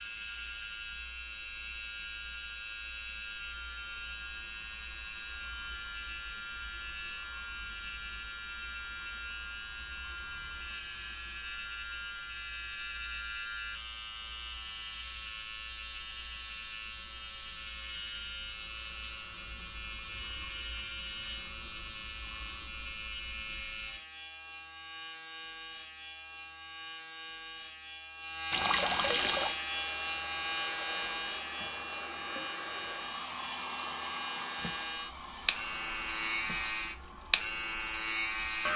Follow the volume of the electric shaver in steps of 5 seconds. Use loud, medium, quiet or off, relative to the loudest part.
medium, medium, medium, medium, medium, loud, loud, loud.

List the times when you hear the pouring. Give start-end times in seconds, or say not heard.
28.5-29.6.